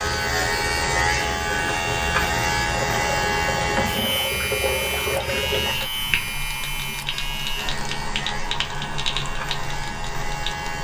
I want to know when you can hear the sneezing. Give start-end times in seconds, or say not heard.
not heard.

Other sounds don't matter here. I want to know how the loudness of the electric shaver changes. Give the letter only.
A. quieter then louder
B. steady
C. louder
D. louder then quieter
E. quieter
E.